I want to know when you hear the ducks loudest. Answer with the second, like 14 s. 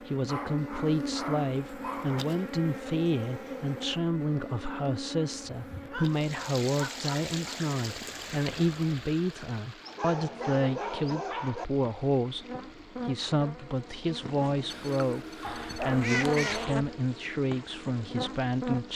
16 s.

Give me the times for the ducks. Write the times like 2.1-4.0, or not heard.
14.7-16.6.